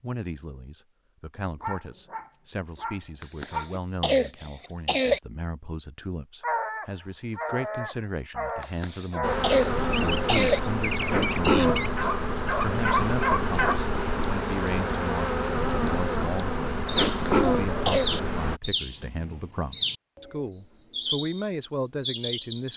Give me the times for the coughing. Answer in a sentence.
The coughing can be heard from 3.2 to 5.2 s, from 8.6 to 10.6 s and from 17.1 to 18.1 s.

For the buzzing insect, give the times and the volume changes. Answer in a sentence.
You can hear the buzzing insect from 9.2 to 18.6 s, at a steady volume.